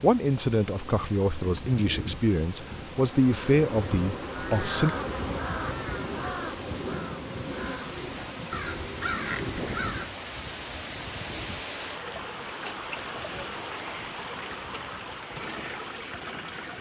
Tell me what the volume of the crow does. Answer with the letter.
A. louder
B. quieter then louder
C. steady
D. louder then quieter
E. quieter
B.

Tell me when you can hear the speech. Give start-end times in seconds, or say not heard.
0.0-4.9.